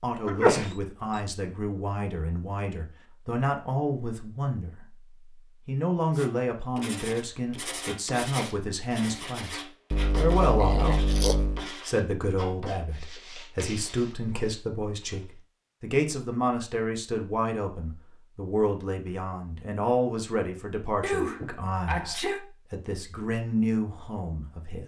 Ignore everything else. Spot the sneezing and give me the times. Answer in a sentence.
The sneezing can be heard from 0.2 to 0.8 s, from 9.9 to 11.7 s and from 21.0 to 22.4 s.